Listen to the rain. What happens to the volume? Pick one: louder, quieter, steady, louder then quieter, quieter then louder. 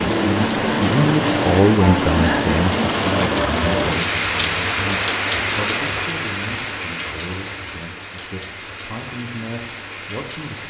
quieter.